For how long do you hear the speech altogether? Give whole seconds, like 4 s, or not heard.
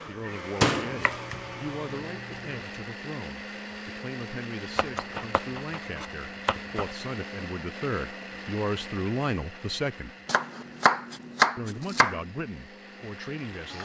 12 s.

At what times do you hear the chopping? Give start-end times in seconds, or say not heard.
0.8-2.6, 4.8-6.9, 10.2-12.2.